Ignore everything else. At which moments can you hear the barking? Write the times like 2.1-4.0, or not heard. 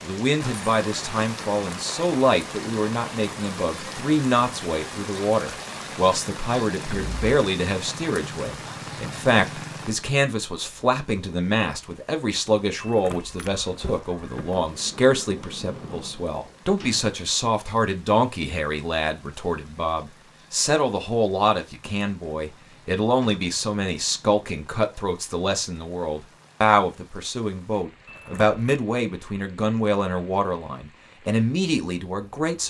not heard.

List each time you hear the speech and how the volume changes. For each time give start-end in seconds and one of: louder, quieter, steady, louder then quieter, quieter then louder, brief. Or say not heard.
0.0-32.6 steady.